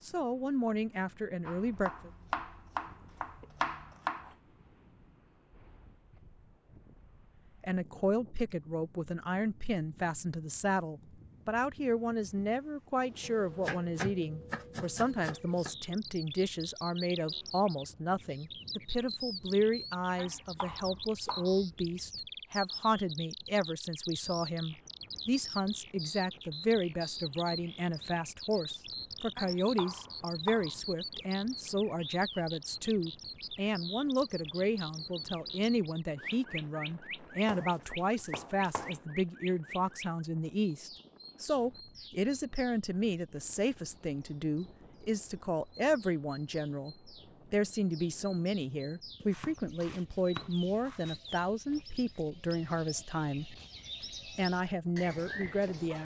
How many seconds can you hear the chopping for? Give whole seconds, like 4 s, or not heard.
12 s.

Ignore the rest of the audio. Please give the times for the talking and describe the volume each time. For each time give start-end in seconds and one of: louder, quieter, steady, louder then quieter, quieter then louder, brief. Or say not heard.
0.0-2.1 brief
7.6-53.5 steady
54.2-55.9 brief.